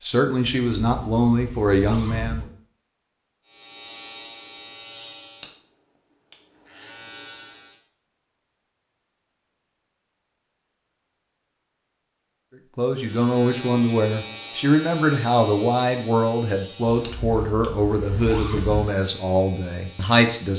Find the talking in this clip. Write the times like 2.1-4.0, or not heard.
0.0-2.5, 12.8-20.5.